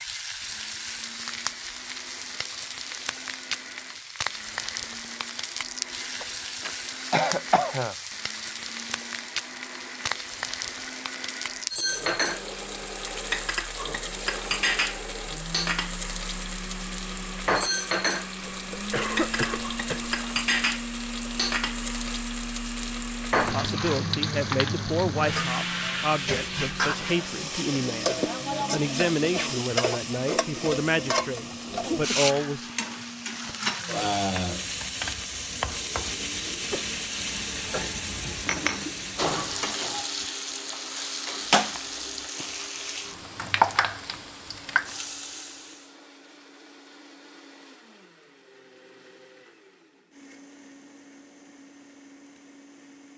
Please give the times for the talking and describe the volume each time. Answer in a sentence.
The talking can be heard from 23.4 to 32.6 s, at a steady volume.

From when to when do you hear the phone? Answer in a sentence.
The phone can't be heard in this clip.